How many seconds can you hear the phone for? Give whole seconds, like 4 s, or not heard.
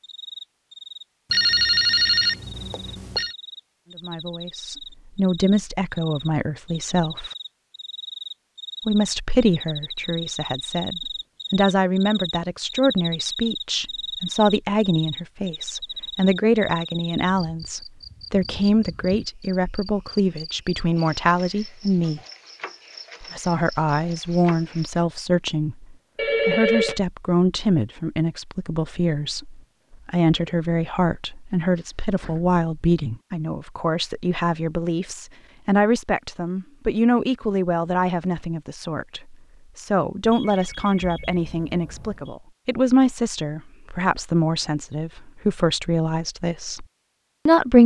5 s.